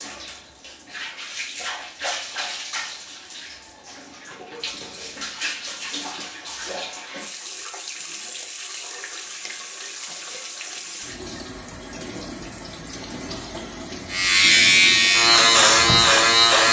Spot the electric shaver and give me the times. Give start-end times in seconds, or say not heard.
14.1-16.6.